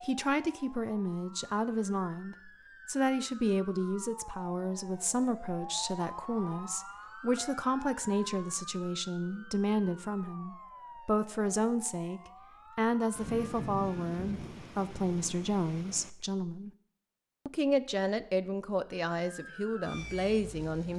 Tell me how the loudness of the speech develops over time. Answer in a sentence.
The volume of the speech stays about the same.